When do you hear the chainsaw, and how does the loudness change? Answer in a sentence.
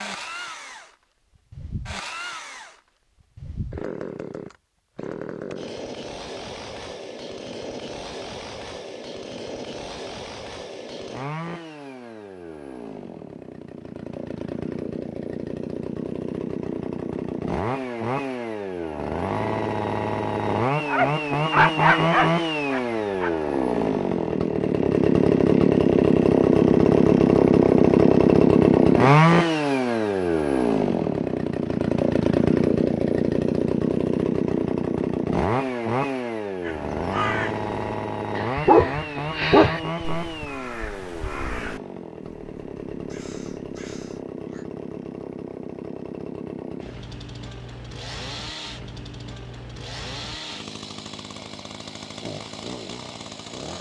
You can hear the chainsaw from 0.0 to 53.7 s, getting louder then quieter.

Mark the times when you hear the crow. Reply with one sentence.
You can hear the crow from 36.6 to 44.6 s.